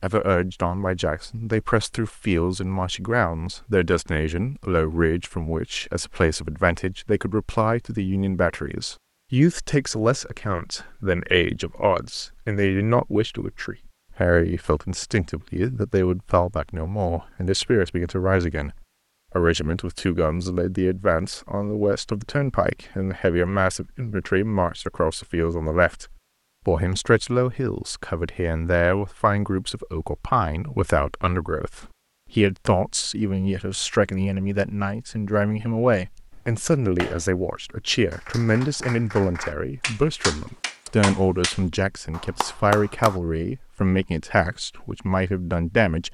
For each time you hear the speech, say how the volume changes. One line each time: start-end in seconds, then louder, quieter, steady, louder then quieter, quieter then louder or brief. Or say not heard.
0.0-46.0 steady.